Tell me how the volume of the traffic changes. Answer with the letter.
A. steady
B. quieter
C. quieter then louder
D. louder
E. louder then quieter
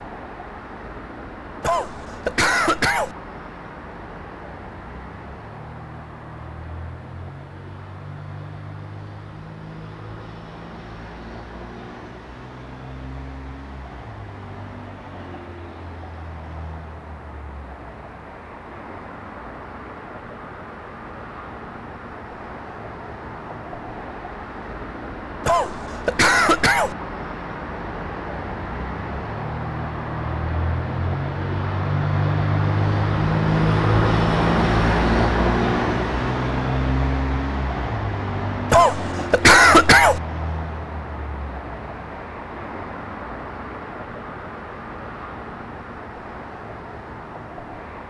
E.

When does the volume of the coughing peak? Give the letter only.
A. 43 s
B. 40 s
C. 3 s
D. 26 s
B.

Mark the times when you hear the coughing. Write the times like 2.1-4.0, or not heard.
1.6-3.1, 25.4-26.9, 38.7-40.2.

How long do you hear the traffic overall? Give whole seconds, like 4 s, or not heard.
48 s.